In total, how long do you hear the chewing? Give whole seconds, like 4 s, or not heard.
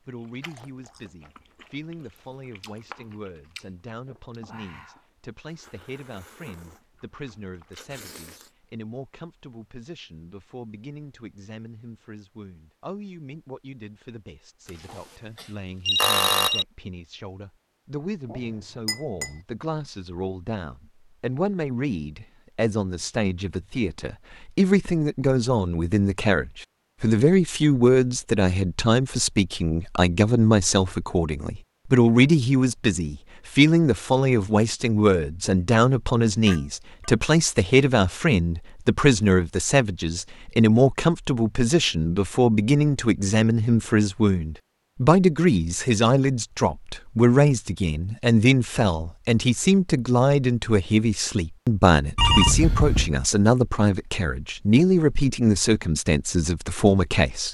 8 s.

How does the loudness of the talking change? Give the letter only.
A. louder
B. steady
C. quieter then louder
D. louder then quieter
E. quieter
A.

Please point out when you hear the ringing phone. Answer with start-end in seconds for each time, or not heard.
14.9-16.6, 52.1-53.1.